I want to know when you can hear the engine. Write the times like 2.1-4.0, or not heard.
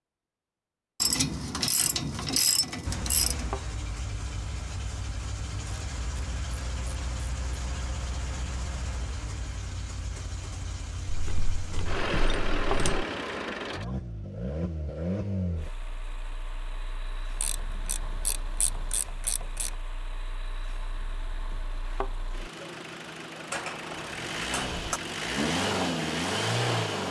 2.9-27.0.